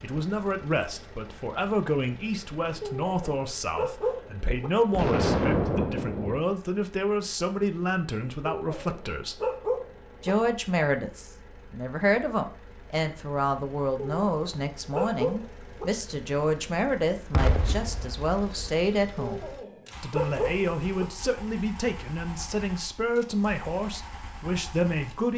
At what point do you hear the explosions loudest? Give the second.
5 s.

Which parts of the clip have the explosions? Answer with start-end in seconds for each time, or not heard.
4.9-6.4, 17.3-18.8.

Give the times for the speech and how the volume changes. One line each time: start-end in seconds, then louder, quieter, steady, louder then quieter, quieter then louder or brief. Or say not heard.
0.0-9.4 steady
10.2-25.3 steady.